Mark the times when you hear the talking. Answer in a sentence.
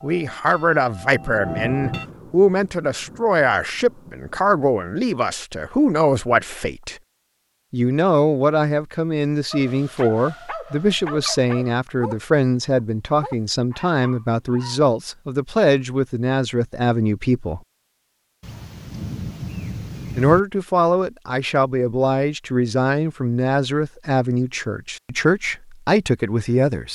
You can hear the talking from 0.0 to 7.0 s, from 7.7 to 17.6 s and from 20.1 to 26.9 s.